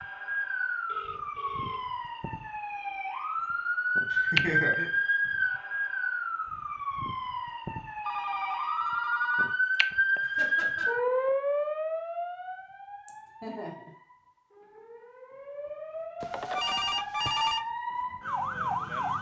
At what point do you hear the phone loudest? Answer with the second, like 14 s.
17 s.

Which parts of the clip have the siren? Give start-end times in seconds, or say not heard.
0.0-19.1.